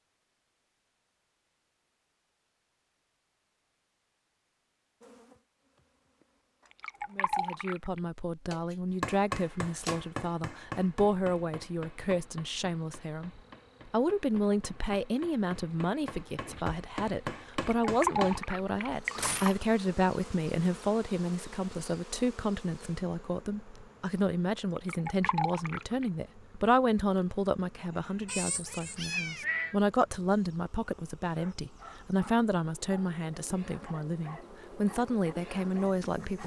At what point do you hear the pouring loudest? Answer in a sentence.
The loudest moment of the pouring is at 18 seconds.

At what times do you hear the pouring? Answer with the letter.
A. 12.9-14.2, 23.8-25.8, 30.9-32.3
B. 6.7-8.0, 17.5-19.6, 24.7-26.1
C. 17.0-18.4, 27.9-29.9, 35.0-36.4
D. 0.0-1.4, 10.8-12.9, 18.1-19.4
B.